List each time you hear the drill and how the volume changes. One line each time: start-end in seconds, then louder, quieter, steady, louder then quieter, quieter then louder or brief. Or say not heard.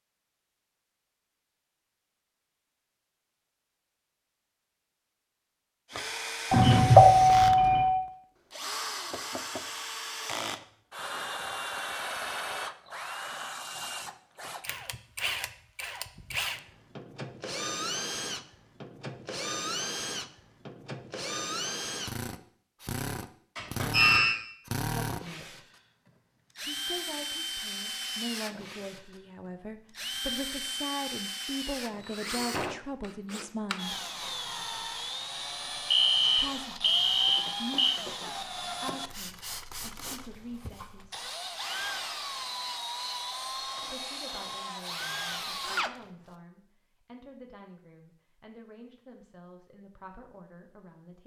5.9-46.0 steady.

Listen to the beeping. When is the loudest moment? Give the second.
7 s.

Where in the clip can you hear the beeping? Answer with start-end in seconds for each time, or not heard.
6.5-7.9, 23.6-24.4, 35.9-37.9.